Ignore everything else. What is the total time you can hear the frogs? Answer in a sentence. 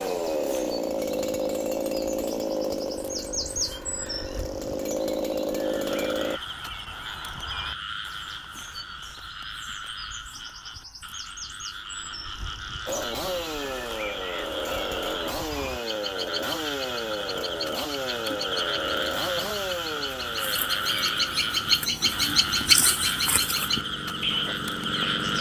You can hear the frogs for 20 seconds altogether.